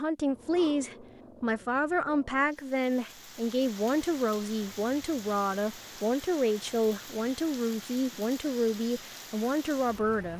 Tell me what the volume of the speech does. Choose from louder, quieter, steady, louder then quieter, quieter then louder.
steady.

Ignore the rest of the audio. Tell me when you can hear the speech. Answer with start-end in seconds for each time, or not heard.
0.0-10.3.